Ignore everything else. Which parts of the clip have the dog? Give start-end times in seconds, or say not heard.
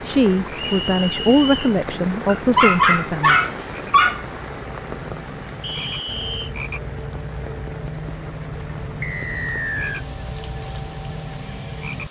2.2-4.2.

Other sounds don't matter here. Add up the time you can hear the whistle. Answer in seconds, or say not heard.
3 s.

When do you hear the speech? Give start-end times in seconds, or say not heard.
0.0-3.4.